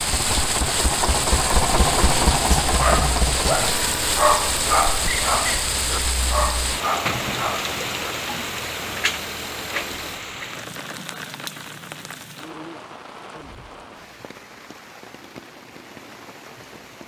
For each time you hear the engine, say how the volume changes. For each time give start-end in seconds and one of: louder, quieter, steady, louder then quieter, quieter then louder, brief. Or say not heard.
0.0-10.2 quieter.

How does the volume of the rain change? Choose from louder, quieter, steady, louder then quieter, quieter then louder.
quieter.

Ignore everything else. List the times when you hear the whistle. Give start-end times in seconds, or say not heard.
5.0-5.7.